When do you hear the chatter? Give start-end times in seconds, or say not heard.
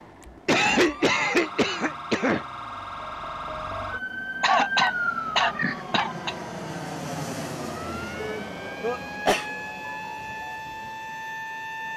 not heard.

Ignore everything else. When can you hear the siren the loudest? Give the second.
5 s.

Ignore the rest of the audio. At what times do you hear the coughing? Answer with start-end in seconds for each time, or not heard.
0.5-2.5, 4.4-6.3, 8.4-9.4.